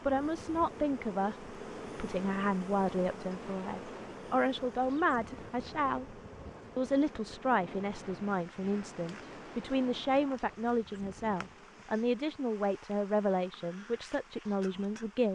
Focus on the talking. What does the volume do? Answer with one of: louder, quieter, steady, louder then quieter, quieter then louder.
steady.